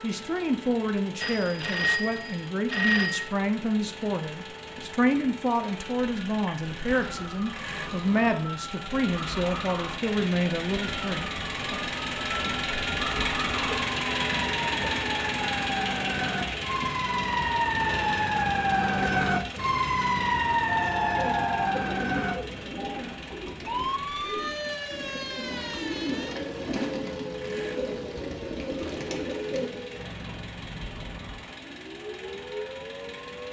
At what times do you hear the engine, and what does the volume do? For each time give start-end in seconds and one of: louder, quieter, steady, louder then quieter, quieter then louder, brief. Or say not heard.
0.0-33.4 louder then quieter.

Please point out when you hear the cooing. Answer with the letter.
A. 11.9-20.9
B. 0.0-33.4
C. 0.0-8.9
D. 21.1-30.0
D.